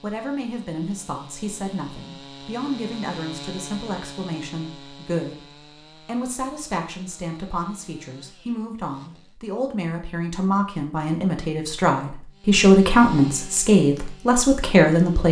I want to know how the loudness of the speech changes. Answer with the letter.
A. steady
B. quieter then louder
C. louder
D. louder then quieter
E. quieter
C.